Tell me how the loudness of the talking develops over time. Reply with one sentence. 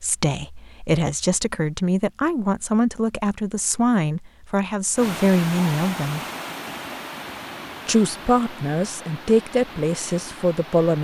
The loudness of the talking stays about the same.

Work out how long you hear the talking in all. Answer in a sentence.
You can hear the talking for 9 seconds altogether.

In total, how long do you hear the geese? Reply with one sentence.
The geese can't be heard in this clip.